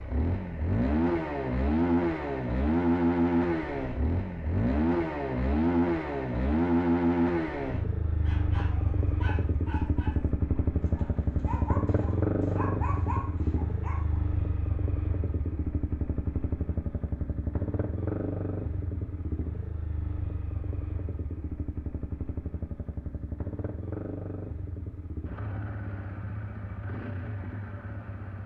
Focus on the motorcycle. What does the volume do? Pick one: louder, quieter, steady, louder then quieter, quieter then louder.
quieter.